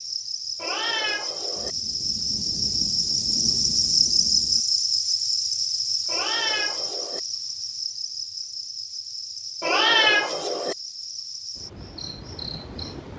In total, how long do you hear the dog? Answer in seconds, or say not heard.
not heard.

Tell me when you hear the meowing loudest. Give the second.
10 s.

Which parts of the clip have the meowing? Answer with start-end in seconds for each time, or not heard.
0.6-1.8, 6.0-7.2, 9.6-10.8.